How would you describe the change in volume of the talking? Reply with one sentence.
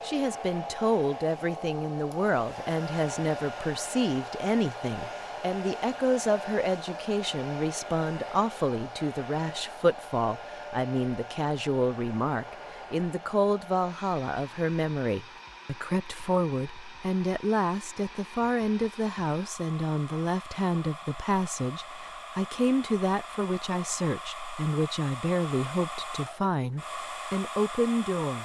The volume of the talking stays about the same.